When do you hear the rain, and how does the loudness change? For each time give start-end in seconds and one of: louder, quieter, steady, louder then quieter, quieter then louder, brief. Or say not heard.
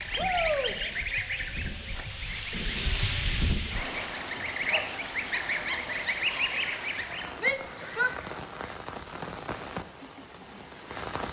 0.0-11.2 louder then quieter.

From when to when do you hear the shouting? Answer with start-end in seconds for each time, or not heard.
0.1-0.8, 7.3-8.2.